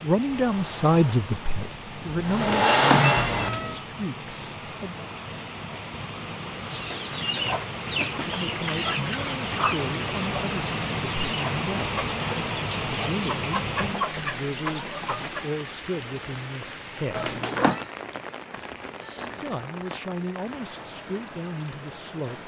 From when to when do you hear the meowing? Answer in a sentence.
The meowing can be heard from 2.4 to 3.8 s and from 17.1 to 17.8 s.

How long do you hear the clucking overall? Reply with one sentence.
You can hear the clucking for 9 seconds altogether.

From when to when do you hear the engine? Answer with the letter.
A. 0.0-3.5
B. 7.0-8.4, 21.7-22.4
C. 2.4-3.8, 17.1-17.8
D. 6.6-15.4
A.